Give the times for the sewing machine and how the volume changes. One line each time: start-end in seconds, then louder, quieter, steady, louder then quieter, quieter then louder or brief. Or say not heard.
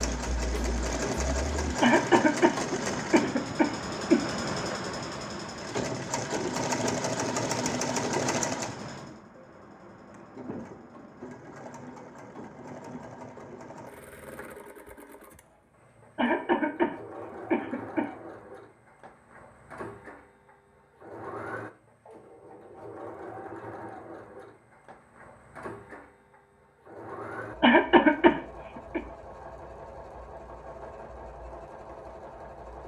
0.0-32.8 quieter.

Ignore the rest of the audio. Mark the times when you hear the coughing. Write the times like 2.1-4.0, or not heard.
1.8-4.2, 16.1-18.1, 27.6-29.0.